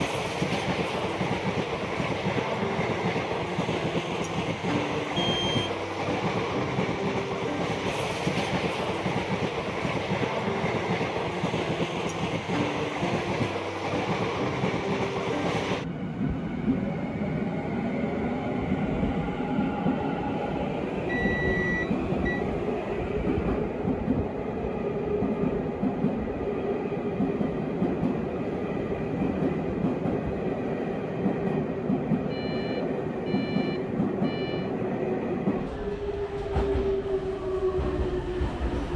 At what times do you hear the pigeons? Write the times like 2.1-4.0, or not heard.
not heard.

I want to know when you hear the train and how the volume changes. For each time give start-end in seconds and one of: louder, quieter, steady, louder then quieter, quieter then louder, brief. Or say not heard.
0.0-38.9 steady.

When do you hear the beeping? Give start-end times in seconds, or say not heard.
5.2-5.8, 21.1-22.4, 32.3-34.8.